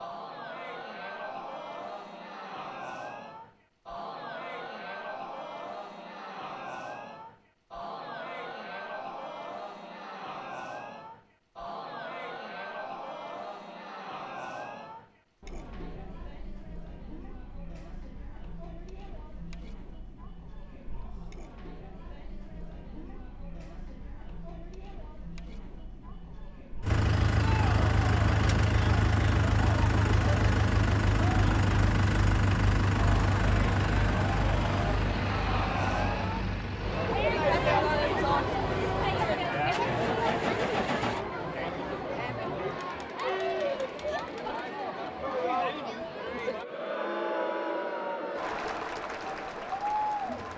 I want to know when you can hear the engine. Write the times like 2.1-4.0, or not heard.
26.8-41.2.